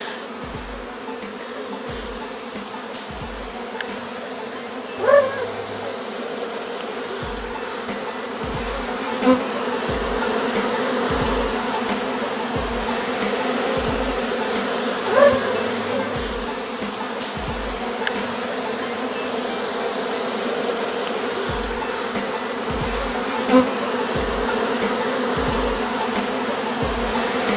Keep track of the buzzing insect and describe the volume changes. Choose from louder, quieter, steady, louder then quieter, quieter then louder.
louder.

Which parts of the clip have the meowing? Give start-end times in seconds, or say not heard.
5.0-6.0, 15.1-16.1.